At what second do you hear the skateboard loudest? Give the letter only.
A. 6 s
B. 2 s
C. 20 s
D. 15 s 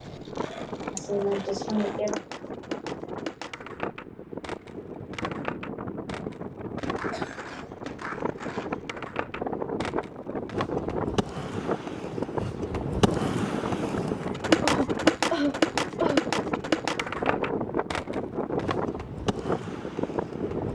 D.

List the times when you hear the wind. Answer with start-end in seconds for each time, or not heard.
0.0-20.7.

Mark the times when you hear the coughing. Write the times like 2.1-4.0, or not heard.
0.9-2.2, 7.1-7.7, 14.6-16.2.